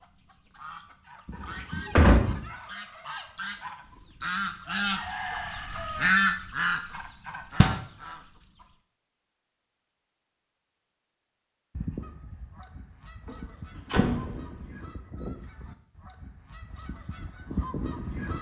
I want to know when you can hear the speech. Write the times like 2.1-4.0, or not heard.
not heard.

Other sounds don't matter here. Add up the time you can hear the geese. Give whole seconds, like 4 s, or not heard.
15 s.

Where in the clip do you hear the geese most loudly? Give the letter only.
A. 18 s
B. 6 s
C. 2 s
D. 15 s
B.